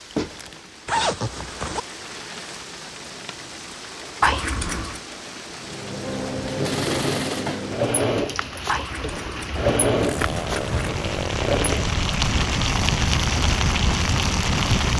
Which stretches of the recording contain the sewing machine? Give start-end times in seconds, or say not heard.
5.6-11.9.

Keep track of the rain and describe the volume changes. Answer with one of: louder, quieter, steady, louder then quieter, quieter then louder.
louder.